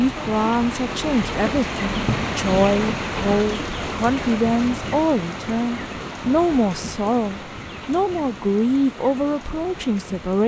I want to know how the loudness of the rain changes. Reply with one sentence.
The loudness of the rain goes down.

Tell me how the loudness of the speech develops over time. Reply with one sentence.
The loudness of the speech stays about the same.